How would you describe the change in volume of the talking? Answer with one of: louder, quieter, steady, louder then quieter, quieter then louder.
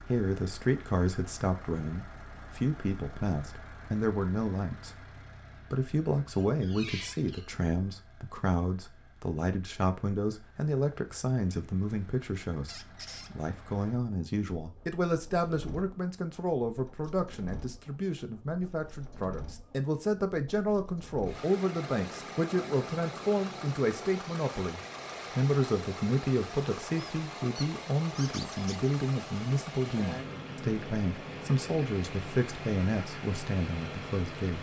steady.